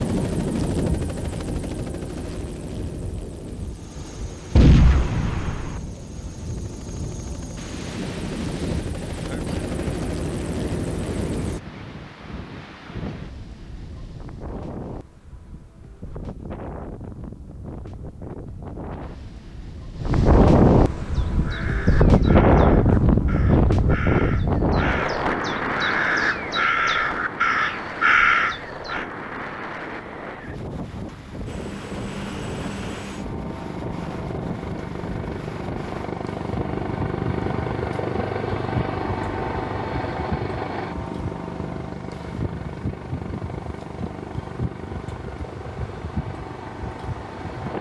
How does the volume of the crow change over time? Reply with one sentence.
The volume of the crow goes up.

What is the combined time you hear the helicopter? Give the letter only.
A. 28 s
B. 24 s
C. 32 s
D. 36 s
A.